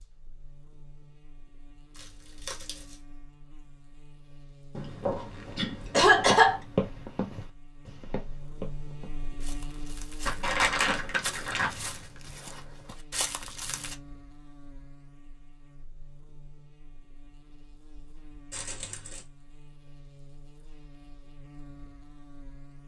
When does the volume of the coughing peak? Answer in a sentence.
The volume of the coughing peaks at 6 seconds.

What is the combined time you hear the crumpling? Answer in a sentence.
The crumpling can be heard for 3 seconds in total.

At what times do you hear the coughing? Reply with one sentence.
You can hear the coughing from 4.8 to 6.6 s.